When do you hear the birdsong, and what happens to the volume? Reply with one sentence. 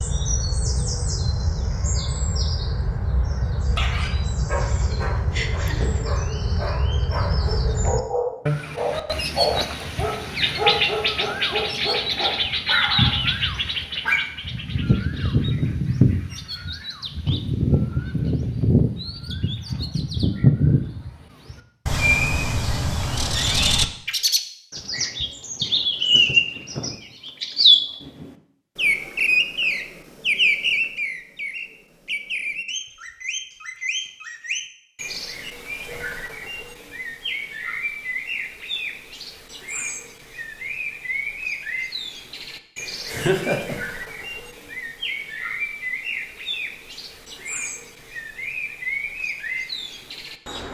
You can hear the birdsong from 0.0 to 50.6 s, getting louder then quieter.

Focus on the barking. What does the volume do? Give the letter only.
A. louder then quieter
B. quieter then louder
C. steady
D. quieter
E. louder
E.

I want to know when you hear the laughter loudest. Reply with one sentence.
The volume of the laughter peaks at 43 seconds.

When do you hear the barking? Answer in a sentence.
The barking can be heard from 3.8 to 14.2 s.